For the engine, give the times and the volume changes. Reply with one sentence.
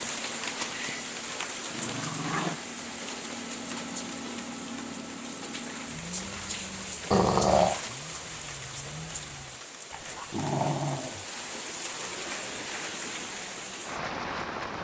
You can hear the engine from 0.0 to 9.7 s, getting louder then quieter.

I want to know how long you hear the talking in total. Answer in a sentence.
You can't hear the talking here.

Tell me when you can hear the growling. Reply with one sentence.
You can hear the growling from 0.7 to 2.6 s, from 7.1 to 7.8 s and from 9.9 to 11.2 s.